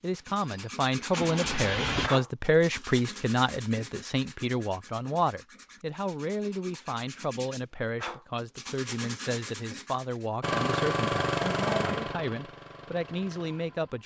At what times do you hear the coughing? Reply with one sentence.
You can hear the coughing from 11.4 to 12.1 s.